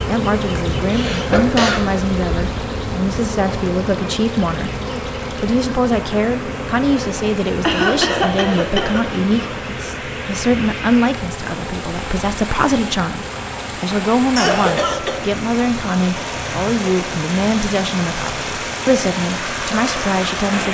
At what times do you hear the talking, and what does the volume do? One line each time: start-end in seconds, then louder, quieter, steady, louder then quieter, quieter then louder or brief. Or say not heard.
0.1-20.6 steady.